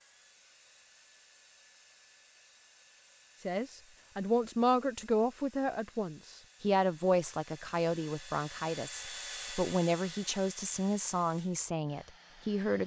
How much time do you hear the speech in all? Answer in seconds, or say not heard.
9 s.